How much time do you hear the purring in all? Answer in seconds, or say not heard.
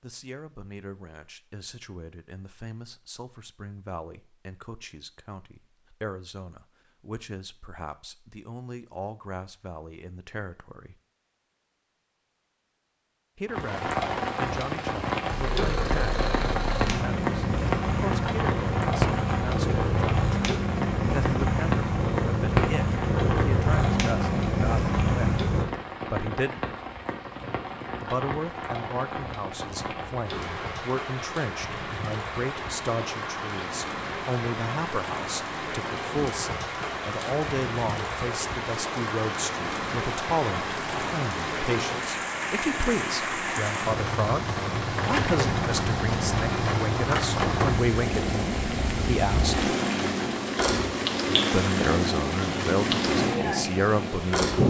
20 s.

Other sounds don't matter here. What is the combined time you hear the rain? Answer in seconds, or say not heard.
41 s.